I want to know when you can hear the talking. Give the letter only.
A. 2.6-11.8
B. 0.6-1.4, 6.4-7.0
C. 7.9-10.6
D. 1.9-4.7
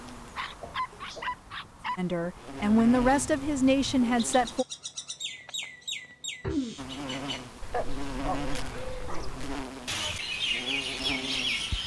D.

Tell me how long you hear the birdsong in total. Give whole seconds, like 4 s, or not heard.
9 s.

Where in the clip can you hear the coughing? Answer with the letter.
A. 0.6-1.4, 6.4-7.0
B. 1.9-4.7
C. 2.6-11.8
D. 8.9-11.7
A.